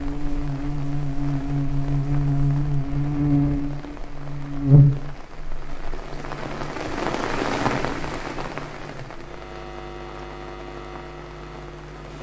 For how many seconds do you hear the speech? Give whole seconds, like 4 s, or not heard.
not heard.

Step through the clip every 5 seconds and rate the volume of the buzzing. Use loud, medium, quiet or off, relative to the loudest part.
loud, quiet, quiet.